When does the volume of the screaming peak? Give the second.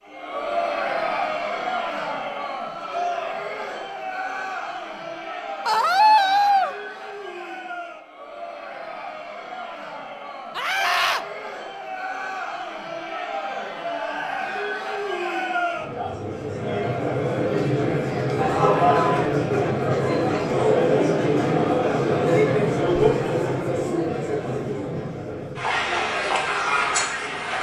6 s.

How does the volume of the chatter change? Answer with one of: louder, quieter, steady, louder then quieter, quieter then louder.
quieter then louder.